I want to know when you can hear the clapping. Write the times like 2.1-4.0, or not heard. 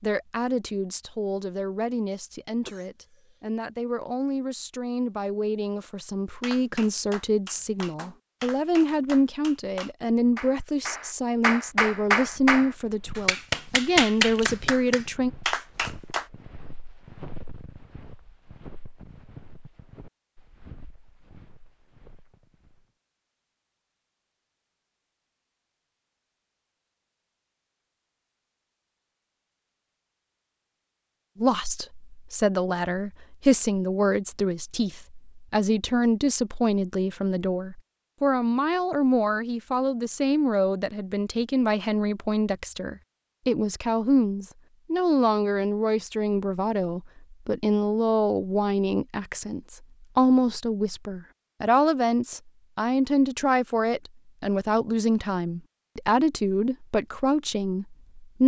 6.4-16.3.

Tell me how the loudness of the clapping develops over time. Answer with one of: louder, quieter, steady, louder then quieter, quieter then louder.
louder.